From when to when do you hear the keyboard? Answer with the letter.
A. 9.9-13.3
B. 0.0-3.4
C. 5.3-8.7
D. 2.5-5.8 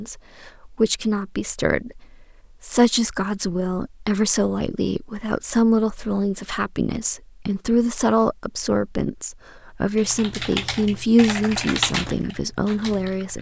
A.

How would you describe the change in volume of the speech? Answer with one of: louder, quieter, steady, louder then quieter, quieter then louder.
steady.